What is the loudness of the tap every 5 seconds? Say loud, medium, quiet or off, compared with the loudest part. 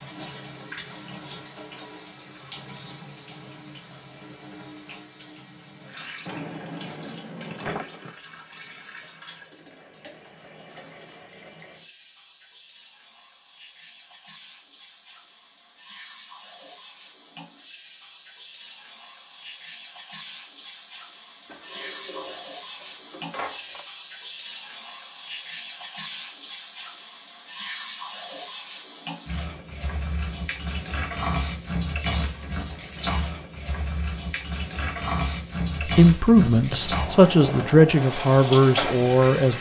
medium, quiet, quiet, quiet, medium, medium, loud, loud.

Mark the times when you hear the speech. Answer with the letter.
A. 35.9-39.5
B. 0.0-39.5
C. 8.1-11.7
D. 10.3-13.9
A.